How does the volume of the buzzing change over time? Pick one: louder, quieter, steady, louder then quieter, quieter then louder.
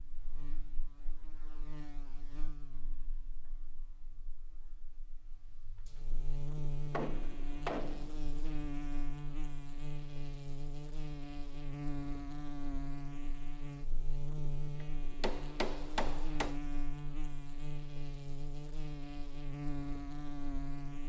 louder.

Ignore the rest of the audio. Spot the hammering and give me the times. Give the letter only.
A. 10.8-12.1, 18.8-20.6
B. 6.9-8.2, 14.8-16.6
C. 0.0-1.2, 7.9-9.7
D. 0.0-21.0
B.